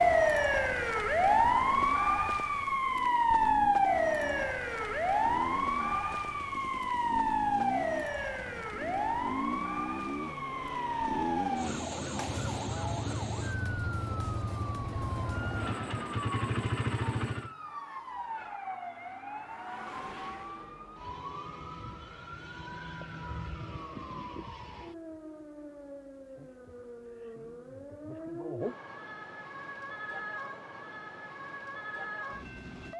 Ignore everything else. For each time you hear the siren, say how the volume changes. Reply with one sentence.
You can hear the siren from 0.0 to 32.9 s, getting quieter.